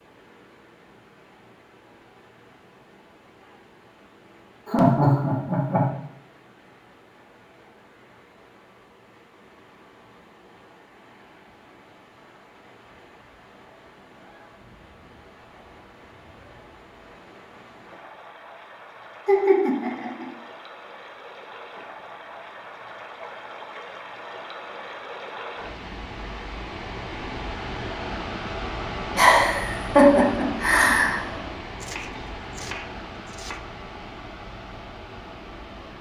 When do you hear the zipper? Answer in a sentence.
The zipper can't be heard in this clip.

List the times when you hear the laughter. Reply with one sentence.
The laughter can be heard from 4.7 to 5.8 s, from 19.2 to 20.3 s and from 29.1 to 31.1 s.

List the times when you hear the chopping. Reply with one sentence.
You can hear the chopping from 31.8 to 33.6 s.